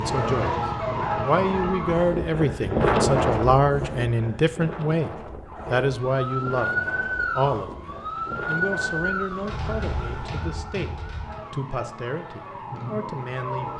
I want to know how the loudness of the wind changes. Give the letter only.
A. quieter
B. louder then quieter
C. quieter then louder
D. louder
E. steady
A.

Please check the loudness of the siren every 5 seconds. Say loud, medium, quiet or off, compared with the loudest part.
loud, loud, medium.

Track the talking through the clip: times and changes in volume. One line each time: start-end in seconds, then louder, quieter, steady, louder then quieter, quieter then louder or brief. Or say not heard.
0.0-13.7 quieter.